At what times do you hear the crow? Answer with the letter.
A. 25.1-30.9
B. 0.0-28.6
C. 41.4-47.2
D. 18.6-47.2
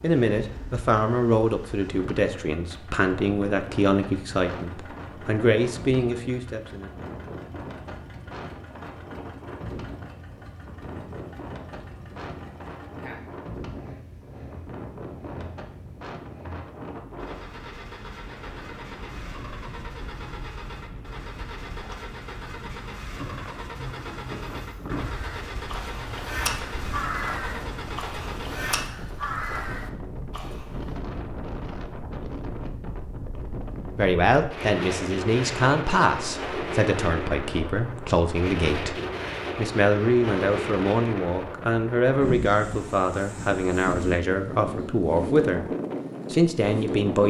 A.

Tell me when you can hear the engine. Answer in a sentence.
You can hear the engine from 0.0 to 28.6 s.